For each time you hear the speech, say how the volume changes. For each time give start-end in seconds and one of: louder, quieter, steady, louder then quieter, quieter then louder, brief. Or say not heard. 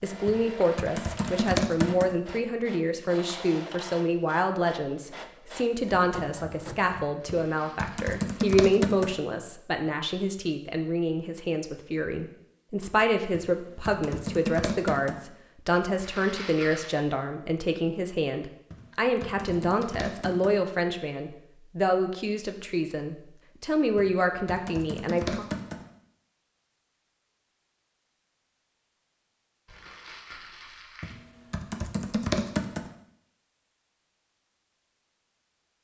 0.0-25.4 steady.